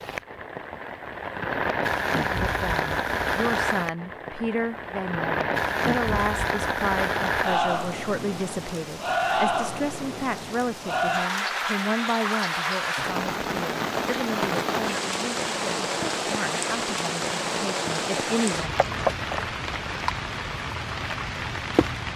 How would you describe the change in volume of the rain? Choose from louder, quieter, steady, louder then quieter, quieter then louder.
steady.